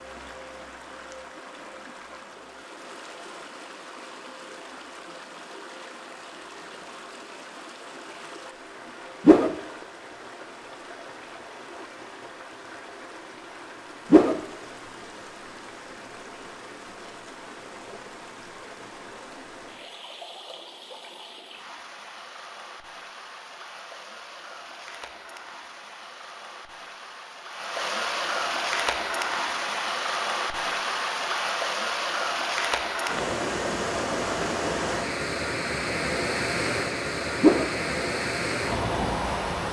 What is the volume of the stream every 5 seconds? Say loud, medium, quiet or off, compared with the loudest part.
quiet, quiet, quiet, quiet, quiet, loud, loud, loud.